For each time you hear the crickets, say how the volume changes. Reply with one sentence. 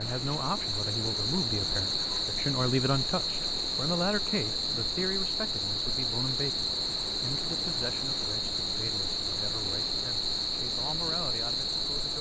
The crickets can be heard from 0.0 to 12.1 s, at a steady volume.